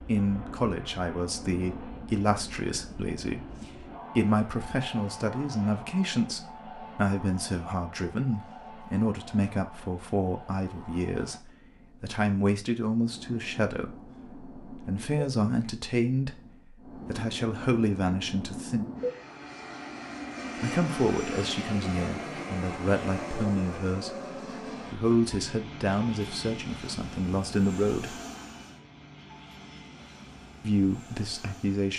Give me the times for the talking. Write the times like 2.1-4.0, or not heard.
0.0-18.9, 20.6-28.2, 30.6-31.9.